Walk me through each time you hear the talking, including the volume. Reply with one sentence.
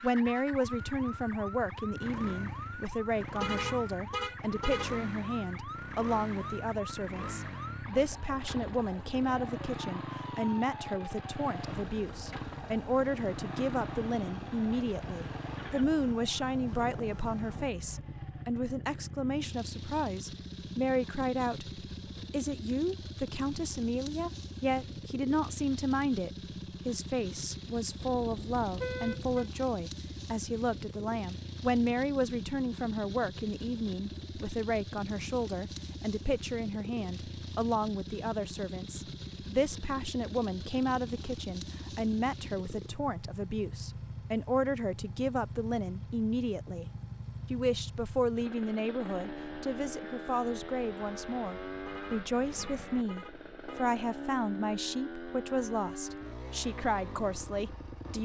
The talking can be heard from 0.0 to 46.9 s, at a steady volume; and from 47.5 to 58.1 s, at a steady volume.